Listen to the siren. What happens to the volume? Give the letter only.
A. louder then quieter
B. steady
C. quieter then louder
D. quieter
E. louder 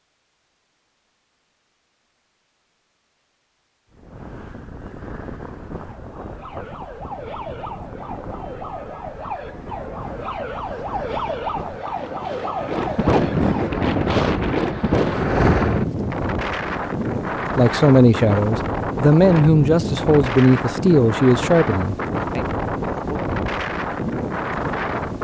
E.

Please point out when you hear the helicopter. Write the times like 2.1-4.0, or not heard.
13.7-15.9.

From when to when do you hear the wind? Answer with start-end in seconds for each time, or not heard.
3.9-25.1.